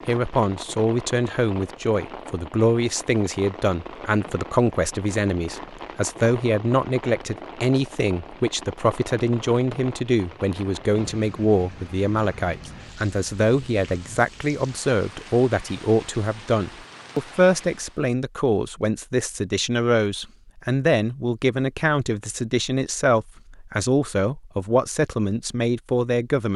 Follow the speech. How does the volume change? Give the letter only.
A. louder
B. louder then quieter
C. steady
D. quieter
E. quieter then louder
C.